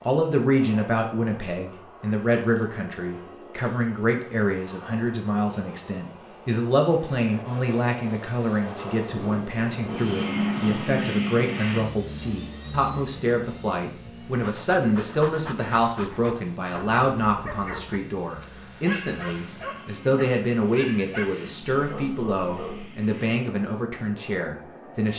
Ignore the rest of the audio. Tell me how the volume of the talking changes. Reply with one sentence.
The loudness of the talking stays about the same.